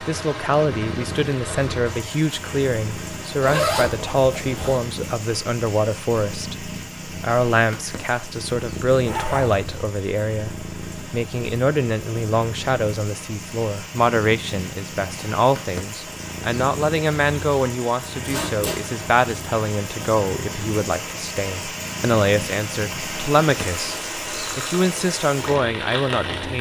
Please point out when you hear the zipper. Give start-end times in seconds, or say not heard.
3.4-4.8, 9.1-9.6, 18.2-18.8.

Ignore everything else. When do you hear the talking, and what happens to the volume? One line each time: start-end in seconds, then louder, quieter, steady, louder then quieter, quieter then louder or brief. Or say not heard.
0.0-26.5 steady.